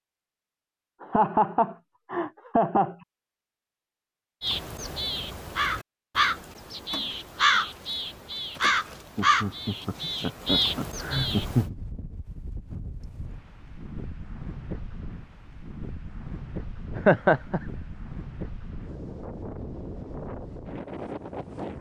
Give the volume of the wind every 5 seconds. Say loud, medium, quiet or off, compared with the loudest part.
off, off, medium, loud, loud.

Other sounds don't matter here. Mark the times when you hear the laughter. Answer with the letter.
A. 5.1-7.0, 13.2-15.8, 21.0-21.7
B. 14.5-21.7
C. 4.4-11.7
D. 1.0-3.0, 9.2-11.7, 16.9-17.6
D.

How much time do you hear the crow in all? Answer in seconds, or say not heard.
7 s.